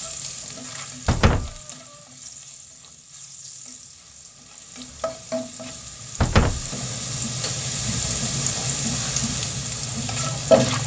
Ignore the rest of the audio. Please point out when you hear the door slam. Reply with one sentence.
You can hear the door slam from 1.1 to 1.6 s and from 6.2 to 6.7 s.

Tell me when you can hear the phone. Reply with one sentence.
The phone can't be heard in this clip.